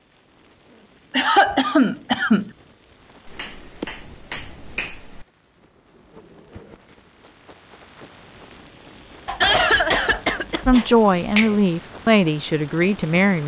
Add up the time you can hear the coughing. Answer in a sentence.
The coughing can be heard for 3 seconds in total.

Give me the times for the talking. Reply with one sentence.
You can hear the talking from 10.7 to 13.4 s.